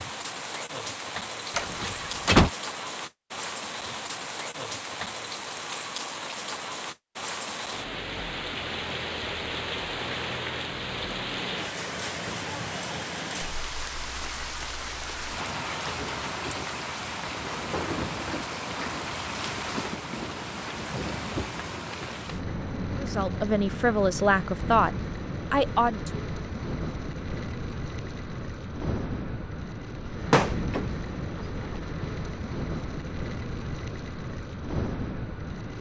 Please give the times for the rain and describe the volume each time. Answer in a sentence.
The rain can be heard from 0.0 to 35.7 s, at a steady volume.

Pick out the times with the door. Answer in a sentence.
The door can be heard from 1.6 to 2.5 s and from 30.1 to 31.8 s.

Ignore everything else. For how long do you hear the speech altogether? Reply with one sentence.
The speech can be heard for 3 seconds in total.